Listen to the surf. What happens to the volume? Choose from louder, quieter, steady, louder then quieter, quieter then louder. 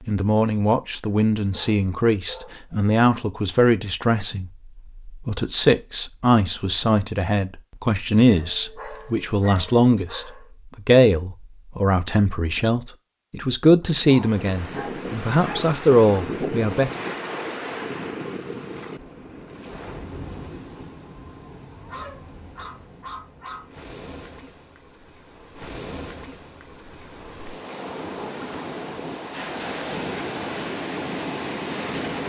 quieter then louder.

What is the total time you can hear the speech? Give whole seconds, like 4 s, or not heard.
17 s.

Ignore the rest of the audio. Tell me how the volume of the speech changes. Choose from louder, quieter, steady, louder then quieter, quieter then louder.
steady.